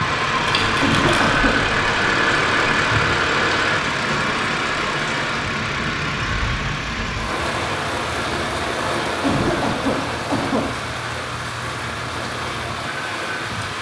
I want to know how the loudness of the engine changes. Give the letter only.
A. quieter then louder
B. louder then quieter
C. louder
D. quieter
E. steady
D.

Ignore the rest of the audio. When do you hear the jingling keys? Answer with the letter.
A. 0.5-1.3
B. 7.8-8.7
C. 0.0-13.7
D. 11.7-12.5
A.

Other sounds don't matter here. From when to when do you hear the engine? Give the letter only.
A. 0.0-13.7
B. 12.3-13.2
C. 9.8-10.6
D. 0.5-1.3
A.